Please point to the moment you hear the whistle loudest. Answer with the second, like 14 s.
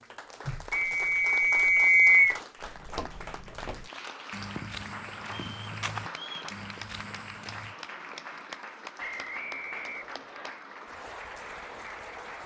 2 s.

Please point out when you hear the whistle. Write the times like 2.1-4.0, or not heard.
0.7-2.4, 5.3-6.5, 9.0-10.6.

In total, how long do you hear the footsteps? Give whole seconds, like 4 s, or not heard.
5 s.